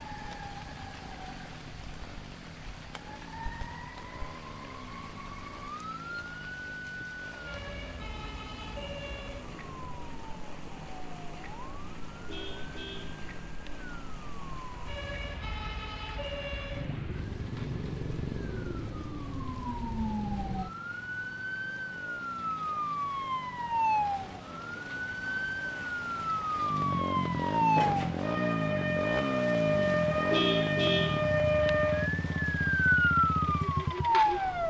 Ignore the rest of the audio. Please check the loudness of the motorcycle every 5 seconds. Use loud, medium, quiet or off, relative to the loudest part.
quiet, quiet, quiet, quiet, quiet, loud, loud.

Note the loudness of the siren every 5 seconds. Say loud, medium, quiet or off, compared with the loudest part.
quiet, quiet, quiet, medium, medium, loud, loud.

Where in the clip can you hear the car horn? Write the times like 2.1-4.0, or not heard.
12.2-13.7, 30.3-31.7.